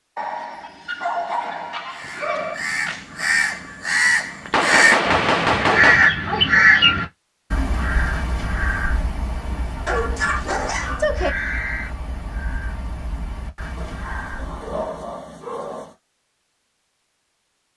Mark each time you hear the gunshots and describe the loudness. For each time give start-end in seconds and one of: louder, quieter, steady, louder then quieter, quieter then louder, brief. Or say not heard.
2.0-6.1 quieter then louder.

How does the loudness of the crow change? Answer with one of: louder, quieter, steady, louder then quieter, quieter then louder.
louder then quieter.